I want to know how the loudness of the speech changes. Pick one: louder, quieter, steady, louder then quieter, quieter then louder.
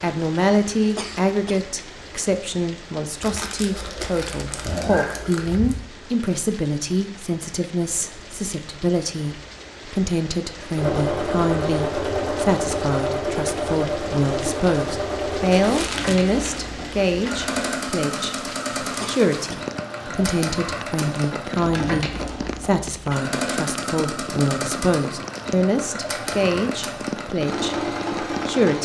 steady.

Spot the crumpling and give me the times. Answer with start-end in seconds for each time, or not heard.
3.2-5.8, 15.5-16.6, 21.7-22.5.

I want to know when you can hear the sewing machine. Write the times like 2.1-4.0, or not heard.
10.8-28.8.